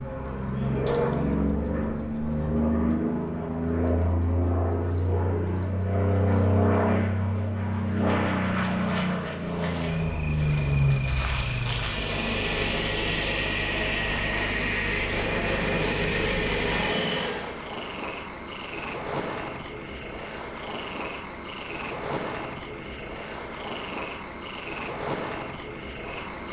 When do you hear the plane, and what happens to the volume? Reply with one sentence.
The plane can be heard from 0.0 to 17.6 s, at a steady volume.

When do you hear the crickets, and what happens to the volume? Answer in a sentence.
The crickets can be heard from 0.0 to 26.4 s, getting louder.